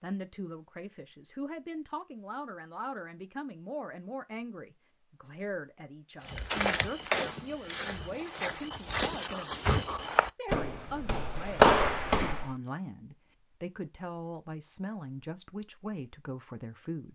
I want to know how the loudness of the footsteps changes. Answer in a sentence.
The volume of the footsteps goes down, then up.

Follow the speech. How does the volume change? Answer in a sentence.
The loudness of the speech stays about the same.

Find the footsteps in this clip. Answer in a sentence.
You can hear the footsteps from 6.2 to 12.6 s.